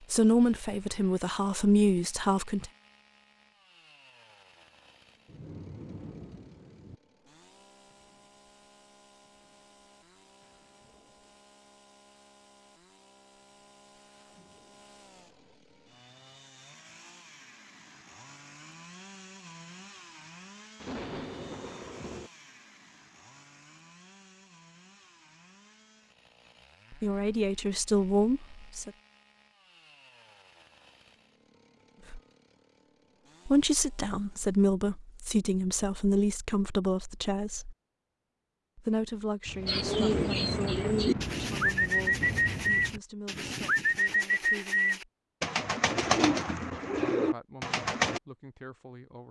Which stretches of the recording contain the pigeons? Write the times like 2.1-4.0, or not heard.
39.6-48.2.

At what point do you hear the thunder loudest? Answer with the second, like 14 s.
40 s.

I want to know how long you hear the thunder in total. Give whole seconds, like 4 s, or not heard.
7 s.